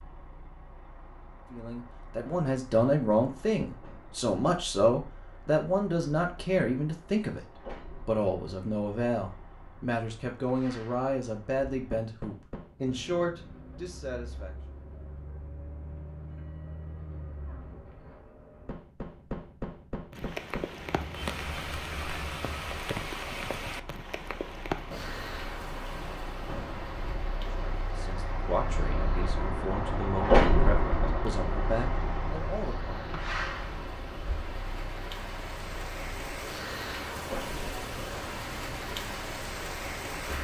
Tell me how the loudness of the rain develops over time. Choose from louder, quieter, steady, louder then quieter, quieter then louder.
quieter then louder.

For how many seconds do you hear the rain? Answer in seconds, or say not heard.
20 s.